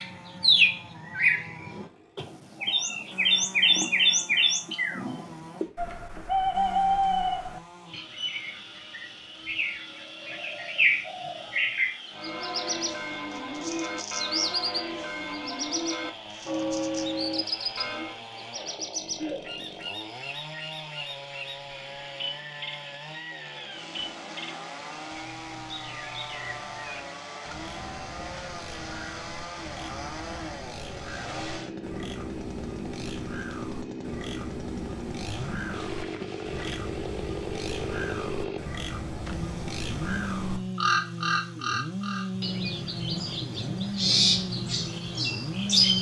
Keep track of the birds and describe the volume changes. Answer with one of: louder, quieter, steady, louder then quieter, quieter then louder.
quieter then louder.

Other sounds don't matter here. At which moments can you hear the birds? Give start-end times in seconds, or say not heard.
0.0-45.9.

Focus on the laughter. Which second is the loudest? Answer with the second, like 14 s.
19 s.